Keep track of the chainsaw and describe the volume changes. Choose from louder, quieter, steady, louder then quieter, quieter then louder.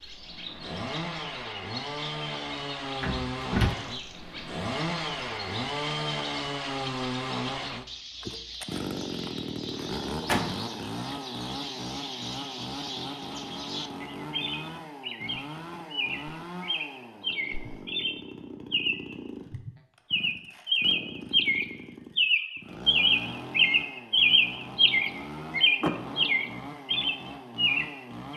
quieter.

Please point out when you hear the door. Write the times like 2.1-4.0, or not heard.
3.0-3.8, 9.8-10.7, 25.8-26.7.